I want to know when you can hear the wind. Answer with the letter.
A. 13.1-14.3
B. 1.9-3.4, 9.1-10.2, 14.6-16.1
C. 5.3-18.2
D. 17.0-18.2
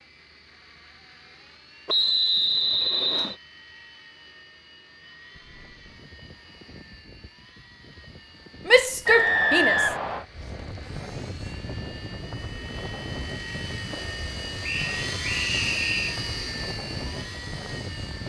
C.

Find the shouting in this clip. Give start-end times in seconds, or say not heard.
8.7-9.9.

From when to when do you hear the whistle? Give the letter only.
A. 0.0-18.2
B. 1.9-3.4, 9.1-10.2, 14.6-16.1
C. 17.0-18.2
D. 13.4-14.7
B.